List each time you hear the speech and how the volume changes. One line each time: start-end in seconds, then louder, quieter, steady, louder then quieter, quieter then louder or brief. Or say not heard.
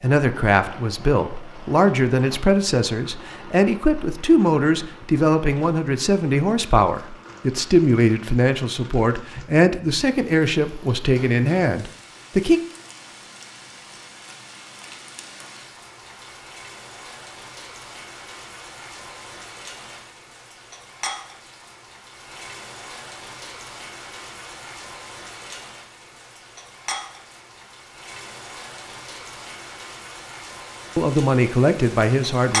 0.0-12.6 steady
30.9-32.5 brief.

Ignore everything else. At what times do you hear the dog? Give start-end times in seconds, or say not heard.
not heard.